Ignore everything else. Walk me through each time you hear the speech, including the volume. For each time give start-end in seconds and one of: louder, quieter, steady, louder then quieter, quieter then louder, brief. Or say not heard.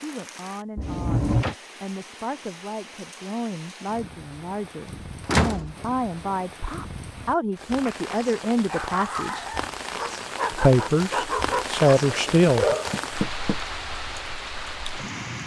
0.0-9.4 louder
10.5-12.8 brief.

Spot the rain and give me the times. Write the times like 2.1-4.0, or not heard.
0.0-15.4.